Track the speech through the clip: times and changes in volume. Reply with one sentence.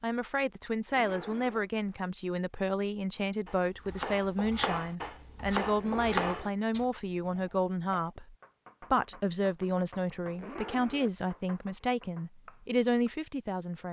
You can hear the speech from 0.0 to 13.8 s, at a steady volume.